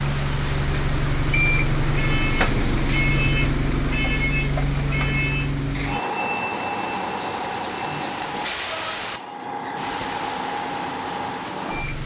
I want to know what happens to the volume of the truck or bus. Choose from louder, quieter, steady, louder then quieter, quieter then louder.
quieter.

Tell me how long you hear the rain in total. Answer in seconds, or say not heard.
12 s.